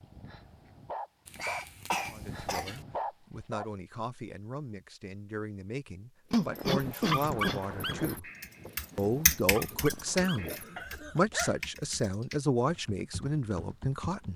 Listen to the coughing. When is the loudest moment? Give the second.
7 s.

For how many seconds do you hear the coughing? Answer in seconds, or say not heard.
4 s.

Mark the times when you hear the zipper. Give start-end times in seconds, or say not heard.
not heard.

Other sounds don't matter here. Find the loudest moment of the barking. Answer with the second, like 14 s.
7 s.